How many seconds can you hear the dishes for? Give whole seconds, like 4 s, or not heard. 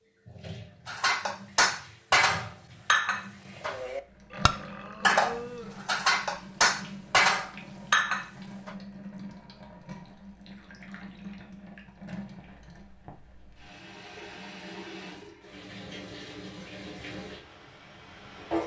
8 s.